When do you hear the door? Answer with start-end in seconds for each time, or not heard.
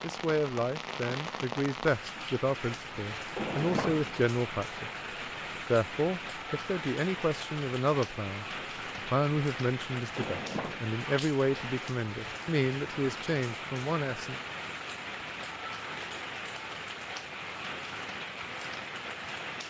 3.4-4.2, 10.2-10.9.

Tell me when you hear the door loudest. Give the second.
4 s.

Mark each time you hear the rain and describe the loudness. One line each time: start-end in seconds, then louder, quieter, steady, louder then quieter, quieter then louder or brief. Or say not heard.
0.0-19.6 steady.